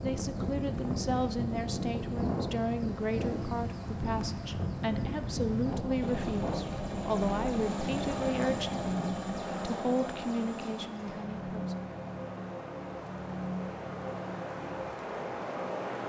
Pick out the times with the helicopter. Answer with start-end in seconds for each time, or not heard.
0.0-16.0.